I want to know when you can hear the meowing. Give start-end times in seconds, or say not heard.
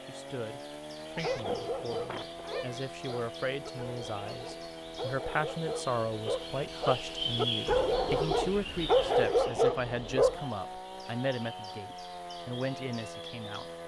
1.1-2.8.